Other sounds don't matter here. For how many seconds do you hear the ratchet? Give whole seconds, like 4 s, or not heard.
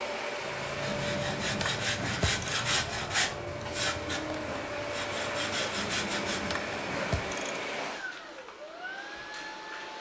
4 s.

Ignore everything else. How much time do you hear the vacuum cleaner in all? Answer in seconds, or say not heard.
10 s.